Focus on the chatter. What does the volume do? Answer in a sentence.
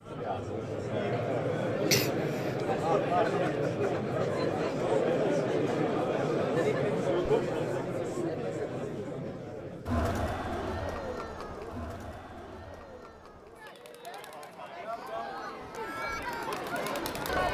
The volume of the chatter goes down.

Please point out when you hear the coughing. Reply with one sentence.
The coughing can be heard from 1.9 to 2.5 s.